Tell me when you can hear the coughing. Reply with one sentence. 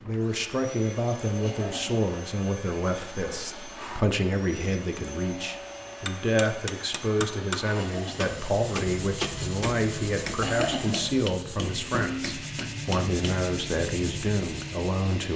The coughing can be heard from 1.4 to 2.0 s, from 7.8 to 8.3 s and from 10.4 to 11.2 s.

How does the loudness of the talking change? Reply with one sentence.
The volume of the talking stays about the same.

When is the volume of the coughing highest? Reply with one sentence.
The loudest moment of the coughing is at 11 seconds.